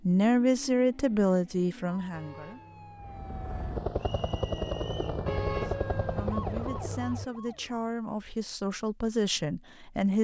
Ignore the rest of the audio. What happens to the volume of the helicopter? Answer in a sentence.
The volume of the helicopter stays about the same.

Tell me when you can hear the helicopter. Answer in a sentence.
The helicopter can be heard from 3.0 to 7.2 s.